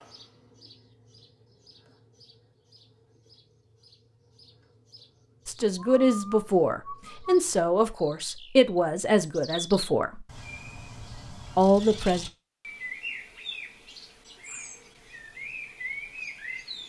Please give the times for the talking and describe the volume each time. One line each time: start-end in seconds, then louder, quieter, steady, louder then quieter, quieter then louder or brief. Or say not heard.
5.5-10.2 steady
11.6-12.2 brief.